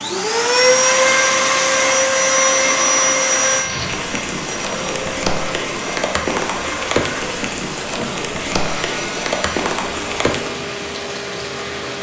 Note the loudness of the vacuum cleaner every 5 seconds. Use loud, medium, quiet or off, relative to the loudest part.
loud, quiet, quiet.